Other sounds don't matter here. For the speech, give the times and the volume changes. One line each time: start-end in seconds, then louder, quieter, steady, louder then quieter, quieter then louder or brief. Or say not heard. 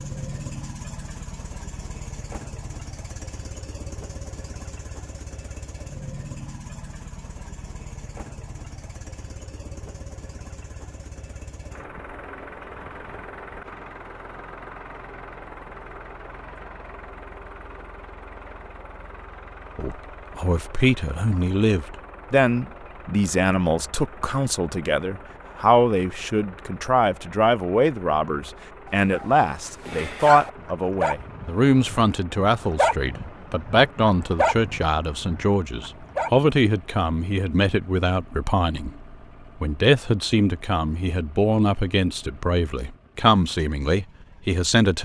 19.8-44.9 steady.